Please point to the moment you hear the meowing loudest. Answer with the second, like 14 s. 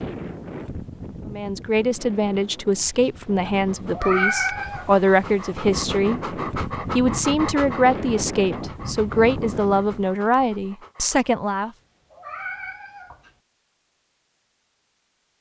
4 s.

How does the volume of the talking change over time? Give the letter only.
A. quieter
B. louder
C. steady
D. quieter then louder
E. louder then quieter
C.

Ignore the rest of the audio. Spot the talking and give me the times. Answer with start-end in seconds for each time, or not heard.
1.3-11.7.